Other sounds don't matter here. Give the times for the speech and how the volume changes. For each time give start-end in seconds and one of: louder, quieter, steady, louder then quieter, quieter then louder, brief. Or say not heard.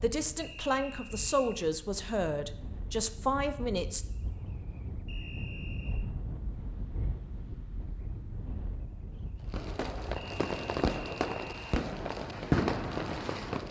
0.0-4.0 steady.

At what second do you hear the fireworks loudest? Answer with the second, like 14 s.
13 s.